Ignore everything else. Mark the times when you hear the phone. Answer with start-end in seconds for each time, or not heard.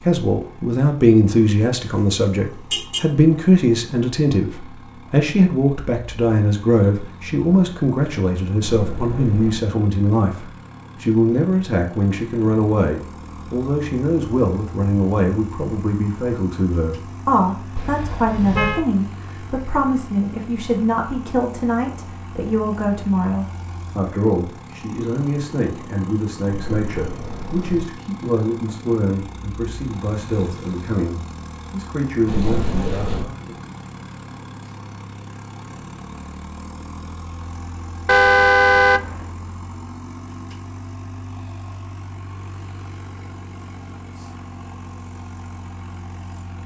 8.6-9.6, 26.4-27.9, 32.2-33.2.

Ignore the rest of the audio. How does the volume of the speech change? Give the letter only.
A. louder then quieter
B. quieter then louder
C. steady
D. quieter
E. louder
D.